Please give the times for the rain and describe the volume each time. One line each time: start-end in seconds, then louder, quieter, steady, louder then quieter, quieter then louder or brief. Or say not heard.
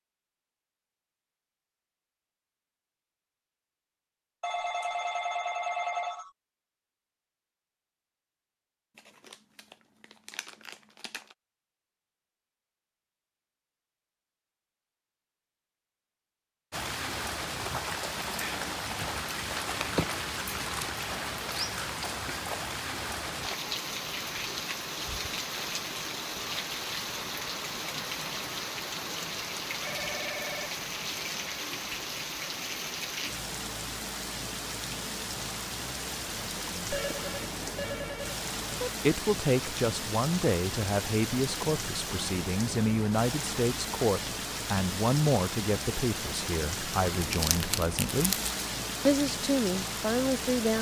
16.7-50.7 steady.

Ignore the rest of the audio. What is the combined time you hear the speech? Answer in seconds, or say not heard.
11 s.